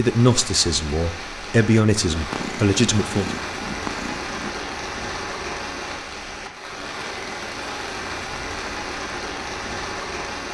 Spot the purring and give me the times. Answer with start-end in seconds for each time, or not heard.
2.1-4.5.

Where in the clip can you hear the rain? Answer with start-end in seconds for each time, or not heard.
0.0-10.4.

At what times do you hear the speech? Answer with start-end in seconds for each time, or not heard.
0.0-3.4.